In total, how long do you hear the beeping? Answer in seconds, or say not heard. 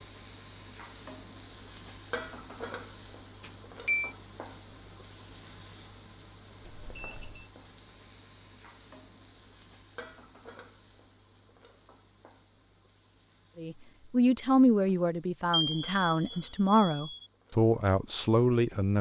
3 s.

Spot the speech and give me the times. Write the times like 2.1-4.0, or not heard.
13.6-18.9.